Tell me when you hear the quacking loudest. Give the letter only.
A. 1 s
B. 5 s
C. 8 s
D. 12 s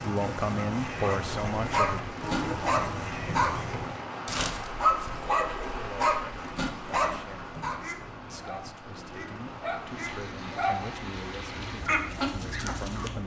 D.